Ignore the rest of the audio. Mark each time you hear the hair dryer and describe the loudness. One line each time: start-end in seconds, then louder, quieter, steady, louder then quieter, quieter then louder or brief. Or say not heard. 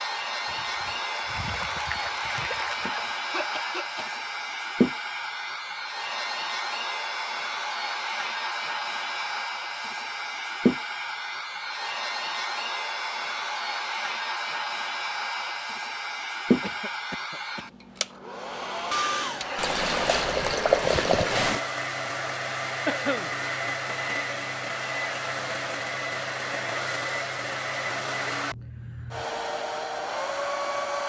0.0-31.0 steady.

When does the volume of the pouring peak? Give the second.
21 s.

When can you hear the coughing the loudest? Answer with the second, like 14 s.
23 s.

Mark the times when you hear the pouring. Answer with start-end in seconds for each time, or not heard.
0.5-3.0, 19.6-21.6.